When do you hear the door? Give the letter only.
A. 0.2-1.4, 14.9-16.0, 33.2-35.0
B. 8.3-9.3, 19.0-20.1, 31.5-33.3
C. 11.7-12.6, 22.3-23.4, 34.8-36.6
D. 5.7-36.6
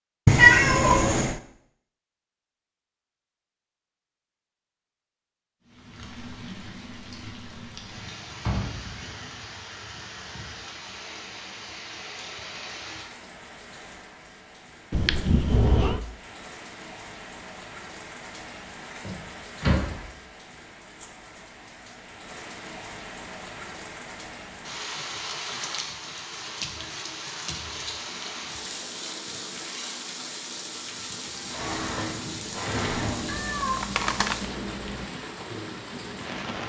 B.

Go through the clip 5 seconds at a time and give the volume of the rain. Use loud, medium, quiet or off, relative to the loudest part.
off, medium, medium, medium, medium, loud, loud, loud.